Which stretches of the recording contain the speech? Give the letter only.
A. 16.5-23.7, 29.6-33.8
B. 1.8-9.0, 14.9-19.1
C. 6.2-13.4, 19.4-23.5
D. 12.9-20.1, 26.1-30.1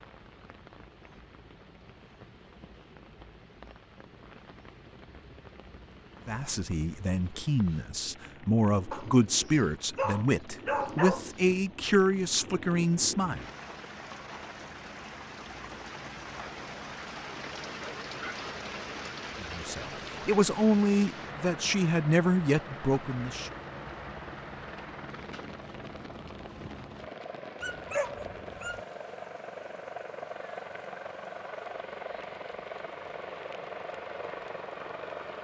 C.